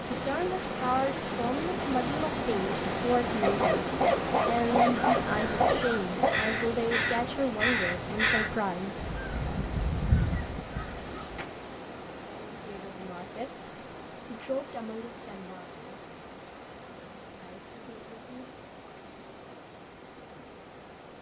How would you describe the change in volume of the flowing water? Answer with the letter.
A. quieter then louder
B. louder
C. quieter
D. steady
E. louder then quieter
C.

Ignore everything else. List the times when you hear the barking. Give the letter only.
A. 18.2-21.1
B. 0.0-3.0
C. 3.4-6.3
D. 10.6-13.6
C.